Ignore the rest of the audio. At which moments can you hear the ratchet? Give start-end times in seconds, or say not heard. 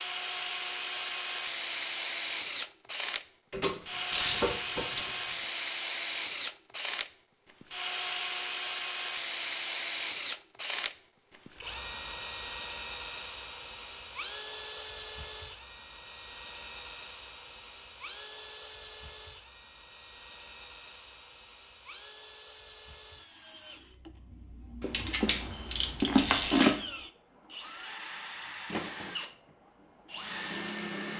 3.5-5.0, 24.8-26.8.